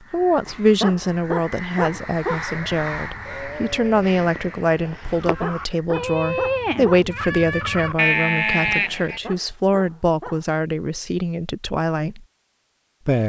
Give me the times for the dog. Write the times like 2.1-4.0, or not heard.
0.5-2.5, 5.0-7.0, 9.1-10.4.